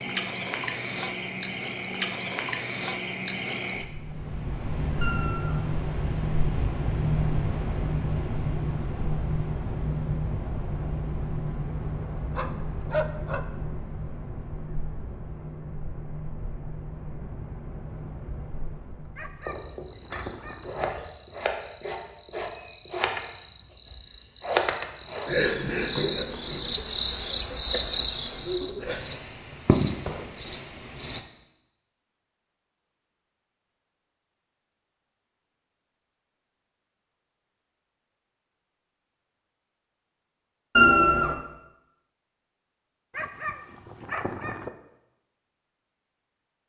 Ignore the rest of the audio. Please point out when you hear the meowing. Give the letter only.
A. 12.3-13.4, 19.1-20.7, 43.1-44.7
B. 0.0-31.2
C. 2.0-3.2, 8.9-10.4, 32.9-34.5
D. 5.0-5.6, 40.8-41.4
D.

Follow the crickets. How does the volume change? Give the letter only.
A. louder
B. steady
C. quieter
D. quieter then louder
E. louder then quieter
D.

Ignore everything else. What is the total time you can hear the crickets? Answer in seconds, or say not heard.
31 s.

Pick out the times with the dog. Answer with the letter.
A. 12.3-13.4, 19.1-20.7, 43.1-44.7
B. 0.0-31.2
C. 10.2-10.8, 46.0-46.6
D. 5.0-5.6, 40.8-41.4
A.